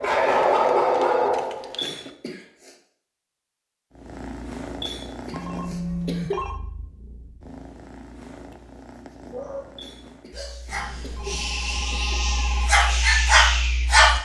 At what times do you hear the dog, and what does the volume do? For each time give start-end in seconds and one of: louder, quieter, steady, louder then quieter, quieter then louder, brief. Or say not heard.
0.0-1.9 brief
9.3-14.2 louder.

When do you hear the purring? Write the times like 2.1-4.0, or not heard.
3.9-10.3.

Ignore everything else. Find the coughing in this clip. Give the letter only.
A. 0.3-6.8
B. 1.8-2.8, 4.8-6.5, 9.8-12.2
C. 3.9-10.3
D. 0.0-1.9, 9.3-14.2
B.